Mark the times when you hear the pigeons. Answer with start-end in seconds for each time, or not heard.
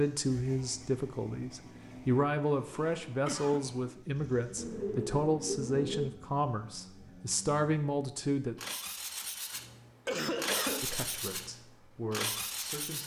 4.5-6.2.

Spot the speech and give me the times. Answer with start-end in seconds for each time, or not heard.
0.0-8.6, 10.8-13.0.